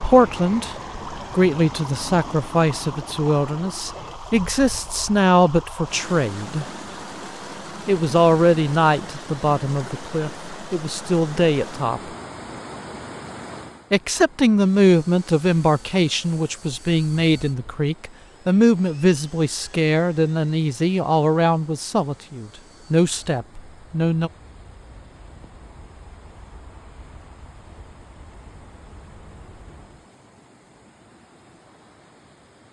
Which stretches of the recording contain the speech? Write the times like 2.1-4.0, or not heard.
0.0-6.7, 7.8-12.0, 13.9-24.3.